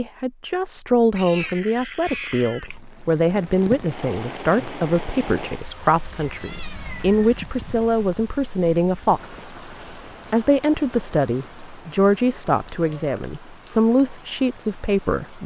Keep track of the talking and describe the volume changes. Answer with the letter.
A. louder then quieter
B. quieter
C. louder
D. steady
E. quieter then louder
D.